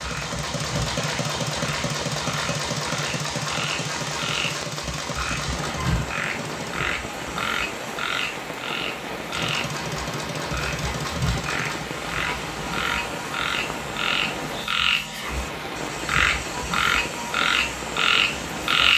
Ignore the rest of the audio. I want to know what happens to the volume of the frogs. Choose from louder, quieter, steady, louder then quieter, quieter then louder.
louder.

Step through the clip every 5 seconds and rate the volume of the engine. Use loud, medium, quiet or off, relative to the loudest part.
loud, loud, medium, medium.